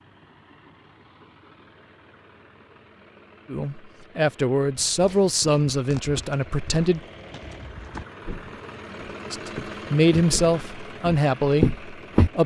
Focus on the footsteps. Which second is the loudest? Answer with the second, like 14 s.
12 s.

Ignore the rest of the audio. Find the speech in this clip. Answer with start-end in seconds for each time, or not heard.
3.5-7.0, 9.2-12.4.